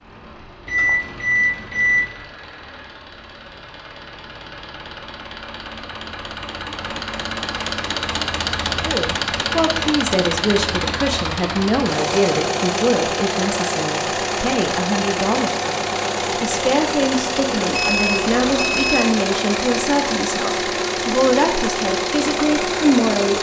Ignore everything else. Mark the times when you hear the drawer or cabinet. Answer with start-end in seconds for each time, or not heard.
not heard.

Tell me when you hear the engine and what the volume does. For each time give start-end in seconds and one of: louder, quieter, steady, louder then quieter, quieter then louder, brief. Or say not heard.
0.0-23.3 louder.